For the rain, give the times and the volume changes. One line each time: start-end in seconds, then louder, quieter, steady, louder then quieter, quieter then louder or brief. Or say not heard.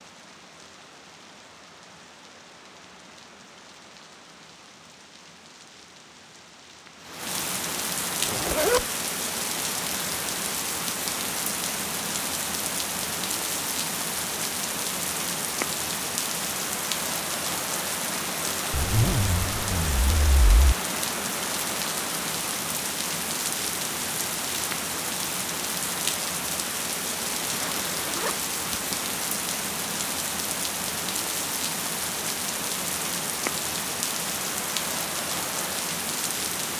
0.0-36.7 louder.